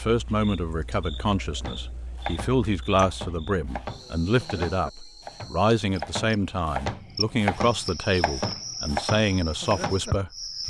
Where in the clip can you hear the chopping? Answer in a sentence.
The chopping can be heard from 1.6 to 10.2 s.